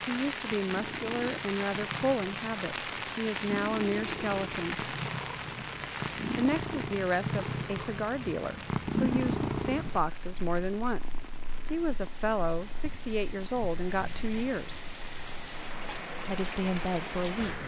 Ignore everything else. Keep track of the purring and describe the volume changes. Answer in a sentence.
The loudness of the purring goes up, then down.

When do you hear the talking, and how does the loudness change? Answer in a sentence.
The talking can be heard from 0.1 to 4.9 s, at a steady volume; from 6.3 to 14.8 s, at a steady volume; and briefly from 16.2 to 17.6 s.